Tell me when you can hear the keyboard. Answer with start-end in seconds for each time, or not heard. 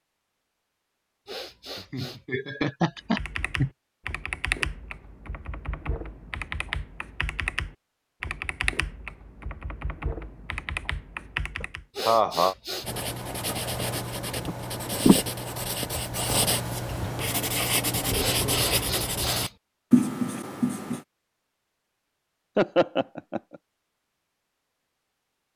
3.0-11.8.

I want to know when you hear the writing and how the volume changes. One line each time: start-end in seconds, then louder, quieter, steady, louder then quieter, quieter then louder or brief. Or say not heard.
12.8-21.0 louder.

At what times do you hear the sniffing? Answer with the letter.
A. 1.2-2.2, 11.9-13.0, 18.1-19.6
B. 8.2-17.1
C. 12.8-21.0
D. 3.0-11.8
A.